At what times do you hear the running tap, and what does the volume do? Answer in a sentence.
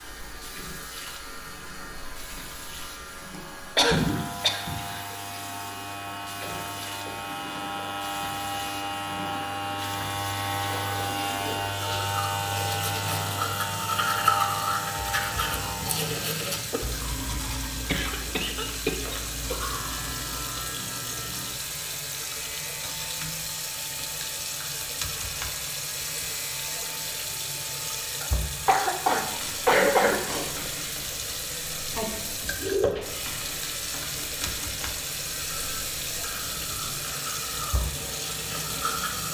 You can hear the running tap from 0.0 to 39.3 s, getting louder.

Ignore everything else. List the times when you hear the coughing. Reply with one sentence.
The coughing can be heard from 3.8 to 5.0 s, from 17.9 to 19.6 s and from 28.2 to 30.2 s.